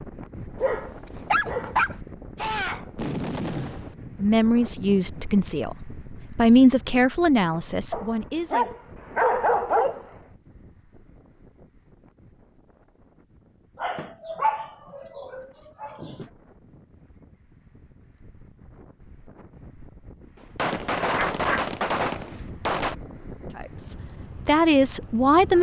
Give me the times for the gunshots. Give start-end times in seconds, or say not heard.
2.4-4.0, 20.4-22.9.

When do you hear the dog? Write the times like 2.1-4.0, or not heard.
0.6-1.9, 7.9-10.1, 13.8-16.2, 21.0-22.4.